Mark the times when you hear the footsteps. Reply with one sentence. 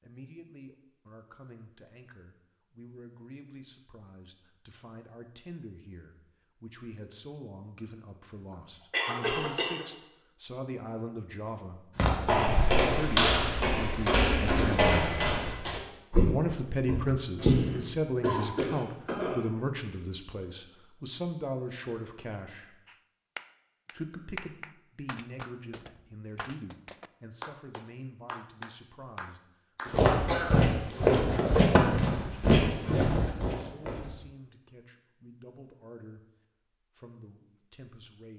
You can hear the footsteps from 11.9 to 17.6 s and from 29.9 to 34.1 s.